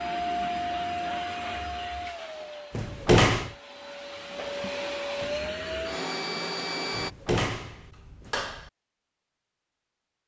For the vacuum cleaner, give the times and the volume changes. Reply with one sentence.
The vacuum cleaner can be heard from 0.0 to 7.1 s, getting quieter then louder.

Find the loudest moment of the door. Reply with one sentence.
The volume of the door peaks at 3 seconds.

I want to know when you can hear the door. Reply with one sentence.
The door can be heard from 2.7 to 3.5 s and from 6.9 to 8.7 s.